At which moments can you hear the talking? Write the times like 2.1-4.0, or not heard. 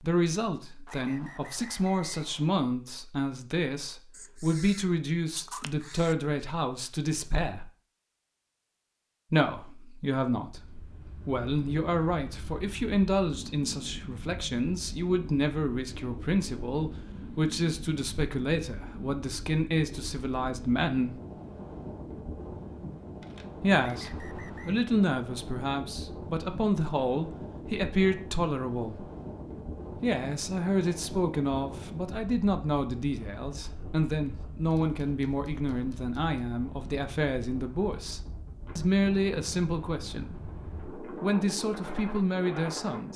0.0-7.7, 9.3-21.2, 23.6-29.1, 30.0-43.1.